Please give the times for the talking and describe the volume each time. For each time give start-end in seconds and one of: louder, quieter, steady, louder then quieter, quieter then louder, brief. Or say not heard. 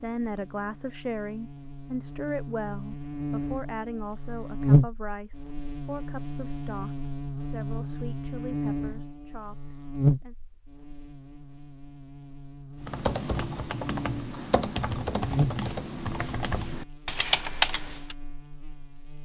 0.0-10.3 quieter.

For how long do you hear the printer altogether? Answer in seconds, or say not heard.
not heard.